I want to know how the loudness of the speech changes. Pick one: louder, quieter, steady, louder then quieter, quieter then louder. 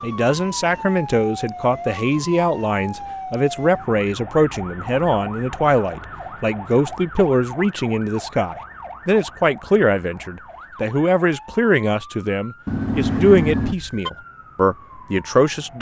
steady.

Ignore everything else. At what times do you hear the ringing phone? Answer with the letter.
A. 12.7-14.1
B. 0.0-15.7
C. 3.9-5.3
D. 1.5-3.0
A.